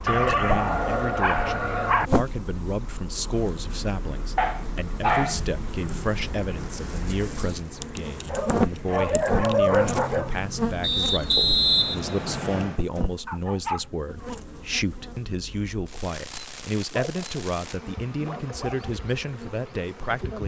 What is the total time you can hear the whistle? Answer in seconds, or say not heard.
2 s.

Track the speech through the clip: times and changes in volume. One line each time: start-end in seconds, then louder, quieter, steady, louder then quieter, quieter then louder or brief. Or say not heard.
0.0-20.4 steady.